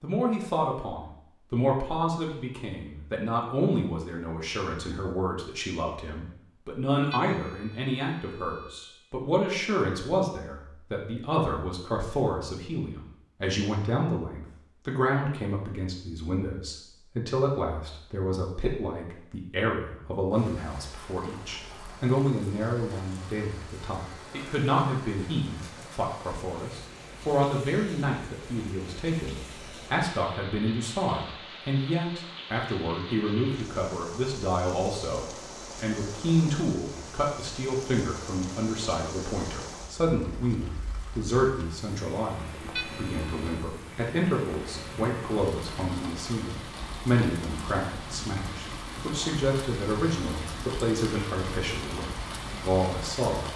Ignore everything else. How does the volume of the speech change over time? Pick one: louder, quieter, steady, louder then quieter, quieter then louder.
steady.